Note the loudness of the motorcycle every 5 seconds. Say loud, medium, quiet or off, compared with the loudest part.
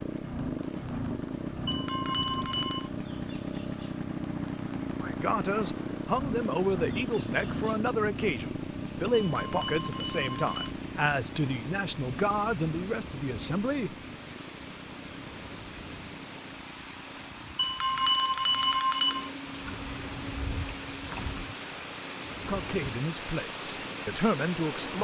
loud, loud, medium, quiet, quiet.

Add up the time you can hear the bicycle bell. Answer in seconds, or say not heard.
5 s.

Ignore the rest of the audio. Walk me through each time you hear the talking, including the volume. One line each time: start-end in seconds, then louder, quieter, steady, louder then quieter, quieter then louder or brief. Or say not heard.
5.0-13.9 steady
22.4-24.9 brief.